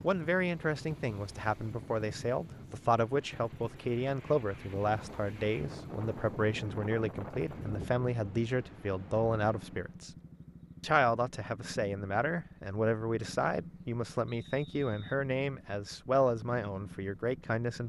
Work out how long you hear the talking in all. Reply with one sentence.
You can hear the talking for 17 seconds altogether.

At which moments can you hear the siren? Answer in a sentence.
The siren can't be heard in this clip.